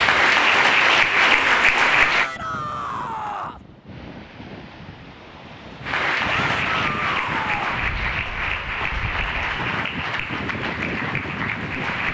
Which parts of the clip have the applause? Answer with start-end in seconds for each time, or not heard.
0.0-2.3, 5.8-12.1.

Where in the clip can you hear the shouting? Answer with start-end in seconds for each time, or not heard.
2.0-3.6, 6.2-7.9.